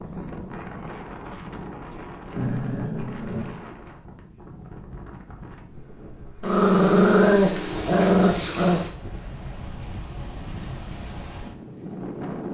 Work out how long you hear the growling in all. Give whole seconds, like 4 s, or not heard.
4 s.